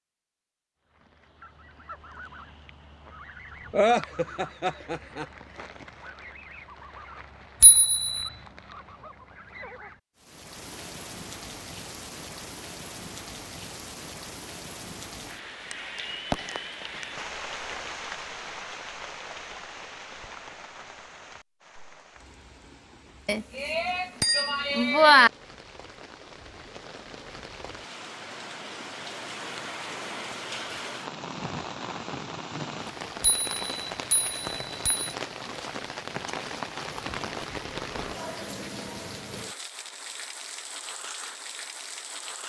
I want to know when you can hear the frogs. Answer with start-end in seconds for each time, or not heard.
not heard.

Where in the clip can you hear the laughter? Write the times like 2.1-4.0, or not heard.
3.7-5.2.